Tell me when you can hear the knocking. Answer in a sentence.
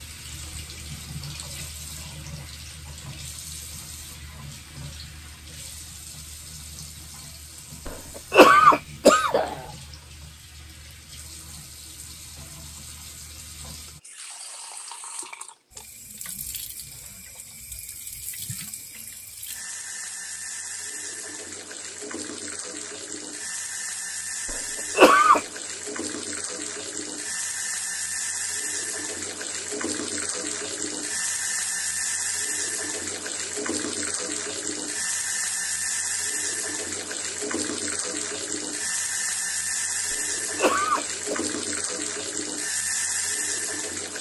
You can't hear the knocking here.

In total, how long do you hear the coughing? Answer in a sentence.
The coughing can be heard for 4 seconds in total.